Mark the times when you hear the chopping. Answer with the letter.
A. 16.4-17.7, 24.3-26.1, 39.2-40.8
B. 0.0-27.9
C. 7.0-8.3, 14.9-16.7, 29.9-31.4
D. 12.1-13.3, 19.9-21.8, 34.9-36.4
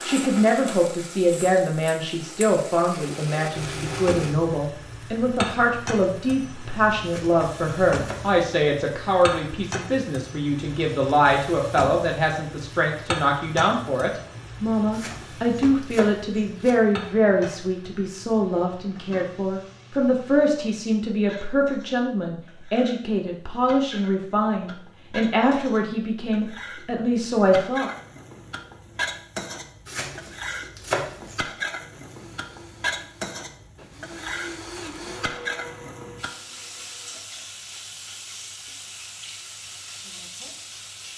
C.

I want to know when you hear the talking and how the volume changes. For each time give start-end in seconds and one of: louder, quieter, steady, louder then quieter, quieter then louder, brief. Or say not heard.
0.0-27.9 steady.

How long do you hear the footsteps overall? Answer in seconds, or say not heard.
not heard.